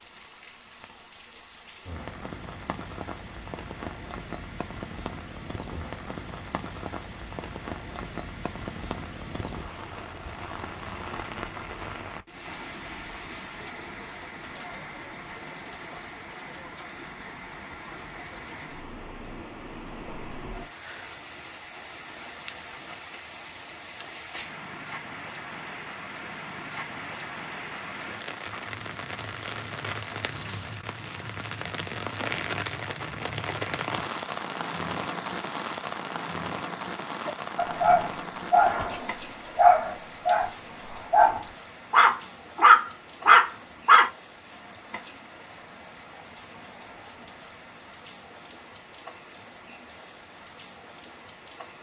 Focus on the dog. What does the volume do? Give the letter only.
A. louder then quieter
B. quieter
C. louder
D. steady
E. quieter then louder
C.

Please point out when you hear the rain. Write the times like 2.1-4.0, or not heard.
0.0-51.7.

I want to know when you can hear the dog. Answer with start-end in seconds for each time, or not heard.
37.2-44.1.